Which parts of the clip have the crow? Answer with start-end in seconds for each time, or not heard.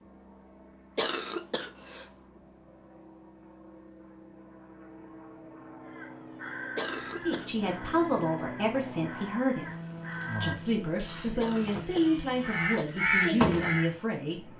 5.8-13.9.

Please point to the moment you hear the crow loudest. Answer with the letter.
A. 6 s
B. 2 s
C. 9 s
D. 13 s
D.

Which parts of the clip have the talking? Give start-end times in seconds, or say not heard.
7.2-9.7, 10.4-14.5.